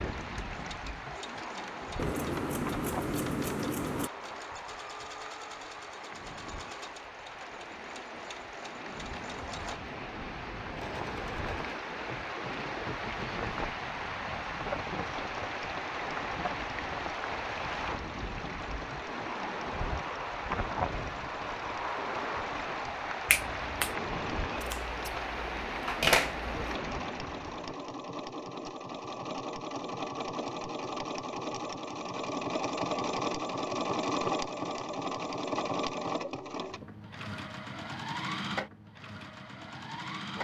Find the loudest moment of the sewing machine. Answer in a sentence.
The loudest moment of the sewing machine is at 34 seconds.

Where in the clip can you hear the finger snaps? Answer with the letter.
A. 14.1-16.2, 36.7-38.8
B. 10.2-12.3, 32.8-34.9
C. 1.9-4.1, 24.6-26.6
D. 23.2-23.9
D.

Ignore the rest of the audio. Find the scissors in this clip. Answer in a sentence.
The scissors can be heard from 1.9 to 4.1 s and from 24.6 to 26.6 s.